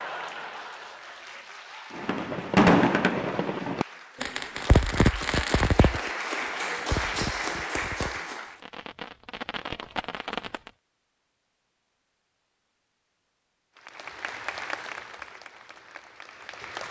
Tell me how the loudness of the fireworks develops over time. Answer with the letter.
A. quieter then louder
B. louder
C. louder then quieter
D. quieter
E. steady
D.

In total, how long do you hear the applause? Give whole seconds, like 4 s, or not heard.
12 s.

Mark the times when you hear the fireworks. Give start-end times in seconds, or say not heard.
1.9-10.7.